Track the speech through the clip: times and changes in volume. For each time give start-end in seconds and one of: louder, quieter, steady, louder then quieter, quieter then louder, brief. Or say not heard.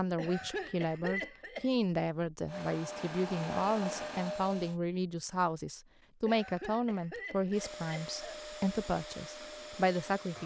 0.0-10.4 steady.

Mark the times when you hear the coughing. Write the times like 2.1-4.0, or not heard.
0.1-1.7, 6.2-8.4.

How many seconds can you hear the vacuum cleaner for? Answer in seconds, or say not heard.
5 s.